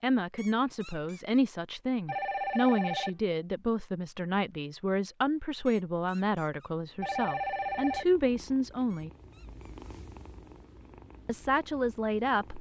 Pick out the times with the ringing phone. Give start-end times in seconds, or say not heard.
2.0-3.1, 7.0-8.1.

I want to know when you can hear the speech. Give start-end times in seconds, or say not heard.
0.0-9.1, 11.2-12.5.